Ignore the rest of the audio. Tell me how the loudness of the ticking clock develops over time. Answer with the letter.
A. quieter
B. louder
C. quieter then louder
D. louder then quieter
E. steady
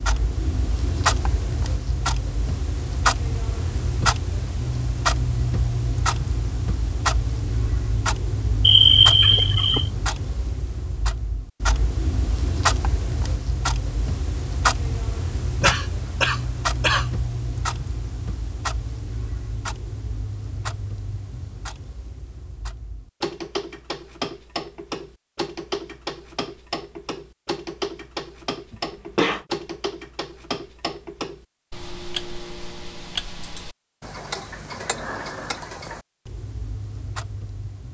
A.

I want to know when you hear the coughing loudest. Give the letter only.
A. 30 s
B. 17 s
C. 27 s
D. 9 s
D.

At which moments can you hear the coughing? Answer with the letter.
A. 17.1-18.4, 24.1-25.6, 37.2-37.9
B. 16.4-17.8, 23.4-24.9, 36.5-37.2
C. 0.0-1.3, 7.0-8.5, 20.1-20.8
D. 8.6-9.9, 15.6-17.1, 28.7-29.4
D.